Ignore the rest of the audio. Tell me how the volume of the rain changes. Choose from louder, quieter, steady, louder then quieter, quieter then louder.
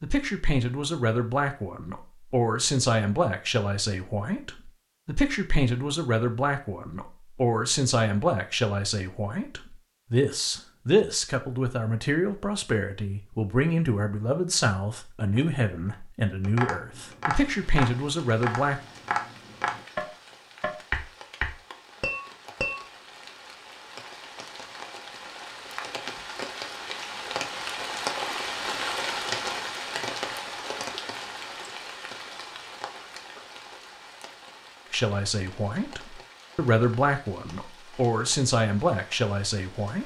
louder then quieter.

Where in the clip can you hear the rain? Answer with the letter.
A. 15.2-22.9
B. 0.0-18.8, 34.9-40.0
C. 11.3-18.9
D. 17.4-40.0
D.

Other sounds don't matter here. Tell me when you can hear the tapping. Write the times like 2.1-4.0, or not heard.
15.2-22.9.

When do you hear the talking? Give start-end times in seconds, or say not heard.
0.0-18.8, 34.9-40.0.